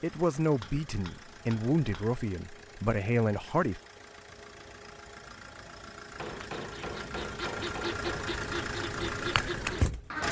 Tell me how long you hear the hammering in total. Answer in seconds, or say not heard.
4 s.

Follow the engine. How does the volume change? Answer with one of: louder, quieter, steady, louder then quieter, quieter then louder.
louder.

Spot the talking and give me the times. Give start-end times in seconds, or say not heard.
0.0-3.8.